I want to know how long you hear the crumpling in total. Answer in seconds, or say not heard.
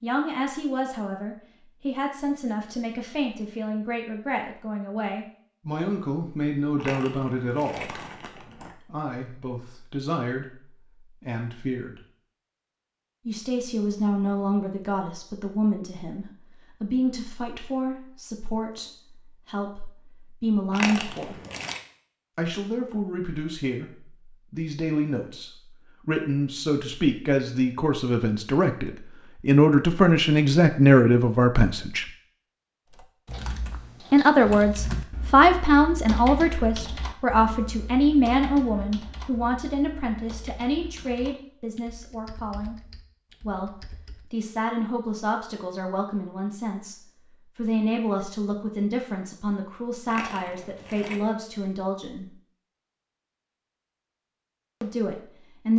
4 s.